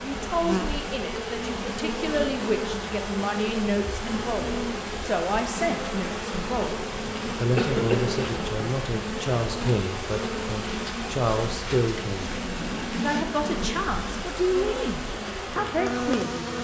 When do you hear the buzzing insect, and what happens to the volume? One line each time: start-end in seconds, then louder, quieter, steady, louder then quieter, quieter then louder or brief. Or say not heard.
0.0-16.5 steady.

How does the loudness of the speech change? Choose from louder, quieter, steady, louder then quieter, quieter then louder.
steady.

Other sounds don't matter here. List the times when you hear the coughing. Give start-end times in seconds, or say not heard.
7.5-8.2.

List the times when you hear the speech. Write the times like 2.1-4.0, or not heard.
0.0-16.5.